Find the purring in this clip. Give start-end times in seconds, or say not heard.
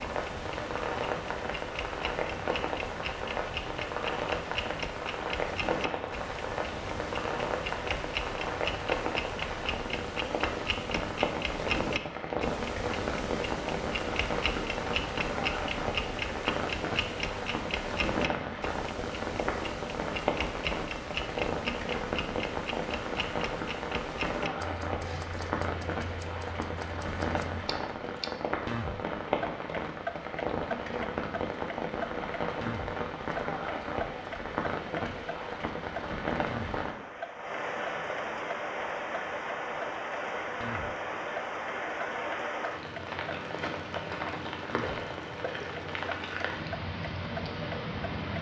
not heard.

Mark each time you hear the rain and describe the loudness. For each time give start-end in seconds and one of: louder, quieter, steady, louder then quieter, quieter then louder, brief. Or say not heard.
0.0-48.3 steady.